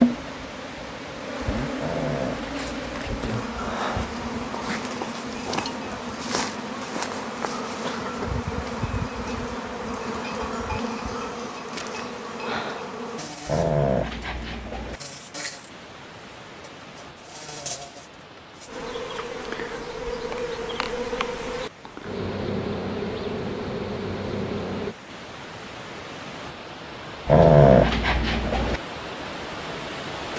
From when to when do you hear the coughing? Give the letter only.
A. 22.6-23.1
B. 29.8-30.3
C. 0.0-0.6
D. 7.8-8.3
D.